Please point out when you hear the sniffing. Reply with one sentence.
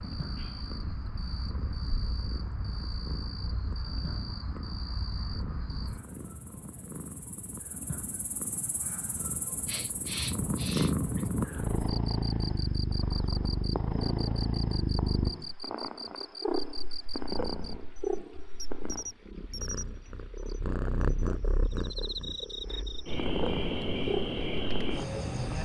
The sniffing can be heard from 9.7 to 11.3 s.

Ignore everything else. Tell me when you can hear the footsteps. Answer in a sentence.
You can't hear the footsteps here.